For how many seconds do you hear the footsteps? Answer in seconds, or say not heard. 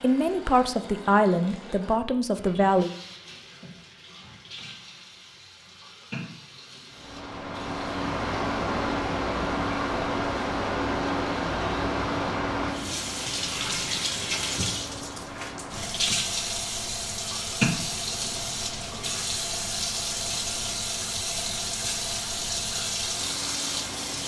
not heard.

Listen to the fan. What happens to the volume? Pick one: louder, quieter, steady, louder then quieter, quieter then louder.
quieter.